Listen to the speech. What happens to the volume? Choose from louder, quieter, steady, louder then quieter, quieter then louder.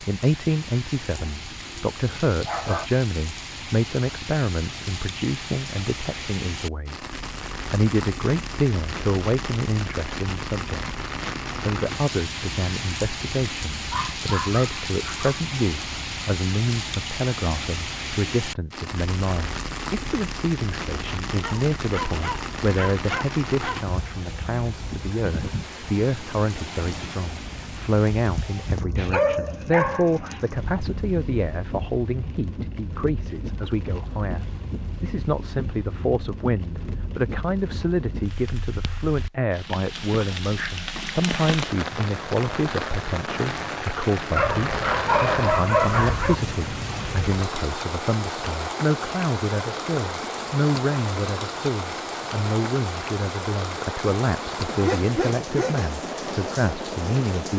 steady.